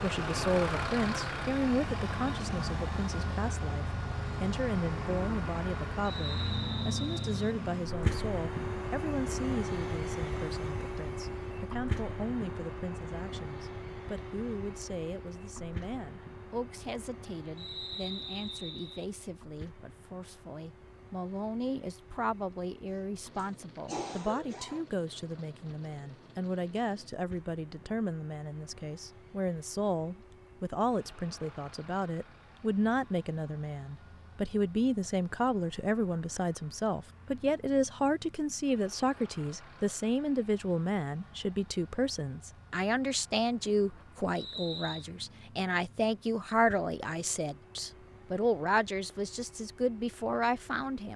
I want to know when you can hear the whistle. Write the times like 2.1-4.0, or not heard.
6.0-7.5, 17.6-19.1, 44.4-45.0.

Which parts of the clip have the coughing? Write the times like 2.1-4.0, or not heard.
22.9-24.9.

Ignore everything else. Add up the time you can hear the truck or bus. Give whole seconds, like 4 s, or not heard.
51 s.